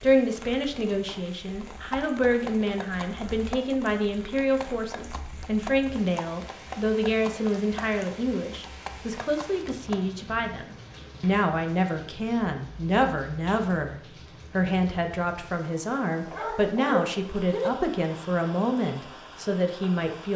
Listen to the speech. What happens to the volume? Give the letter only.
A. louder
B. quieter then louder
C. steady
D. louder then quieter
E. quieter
C.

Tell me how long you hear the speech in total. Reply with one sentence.
You can hear the speech for 20 seconds altogether.